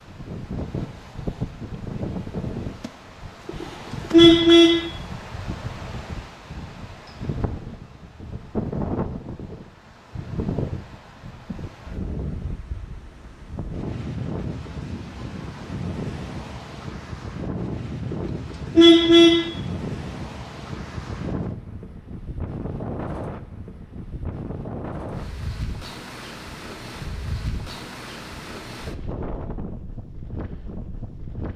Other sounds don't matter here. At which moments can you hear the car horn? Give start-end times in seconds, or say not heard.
3.5-4.8, 18.1-19.5.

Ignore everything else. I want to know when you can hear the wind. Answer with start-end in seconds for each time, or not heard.
0.0-31.5.